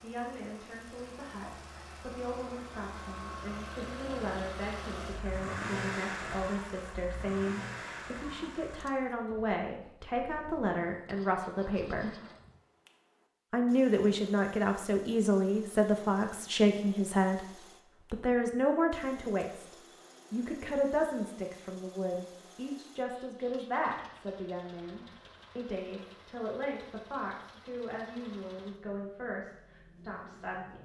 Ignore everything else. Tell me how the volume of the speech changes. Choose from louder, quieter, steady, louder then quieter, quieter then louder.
louder then quieter.